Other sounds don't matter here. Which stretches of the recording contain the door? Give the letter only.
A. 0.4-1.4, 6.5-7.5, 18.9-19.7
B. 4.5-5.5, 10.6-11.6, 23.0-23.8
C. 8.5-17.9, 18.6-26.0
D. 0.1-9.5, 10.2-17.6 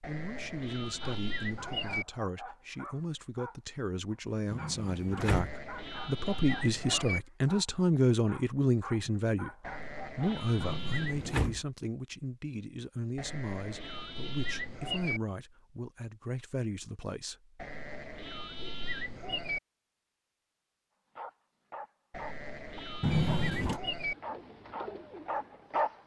B.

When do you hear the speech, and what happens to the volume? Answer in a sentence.
The speech can be heard from 0.1 to 9.5 s, getting louder; and from 10.2 to 17.6 s, at a steady volume.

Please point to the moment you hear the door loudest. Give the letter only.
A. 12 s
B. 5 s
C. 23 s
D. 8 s
C.